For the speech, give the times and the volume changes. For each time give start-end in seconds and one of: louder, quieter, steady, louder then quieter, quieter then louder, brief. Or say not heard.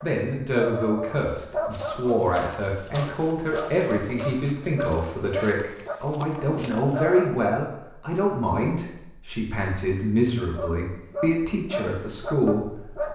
0.0-13.1 steady.